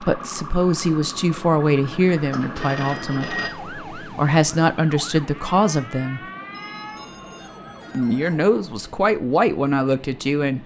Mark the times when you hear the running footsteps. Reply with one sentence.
You can't hear the running footsteps here.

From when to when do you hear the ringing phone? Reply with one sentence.
The ringing phone can be heard from 2.3 to 3.5 s and from 6.5 to 8.4 s.